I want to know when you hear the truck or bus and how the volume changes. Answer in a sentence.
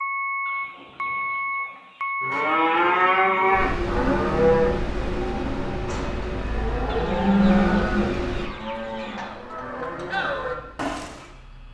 The truck or bus can be heard from 0.0 to 11.6 s, getting quieter.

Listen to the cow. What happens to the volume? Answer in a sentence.
The volume of the cow goes down.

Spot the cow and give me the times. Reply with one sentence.
The cow can be heard from 2.2 to 11.2 s.